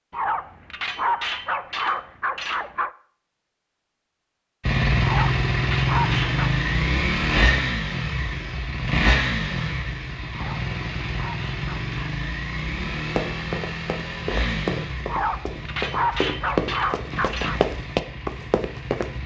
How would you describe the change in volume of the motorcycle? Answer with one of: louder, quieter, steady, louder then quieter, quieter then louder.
quieter.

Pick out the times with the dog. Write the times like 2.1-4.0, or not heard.
0.1-2.9, 5.0-6.5, 10.3-11.9, 15.1-17.6.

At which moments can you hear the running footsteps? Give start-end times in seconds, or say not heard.
13.1-19.2.